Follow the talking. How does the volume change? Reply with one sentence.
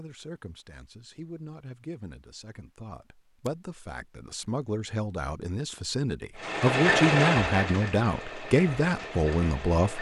The volume of the talking goes up.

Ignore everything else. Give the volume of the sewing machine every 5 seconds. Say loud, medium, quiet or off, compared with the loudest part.
off, loud.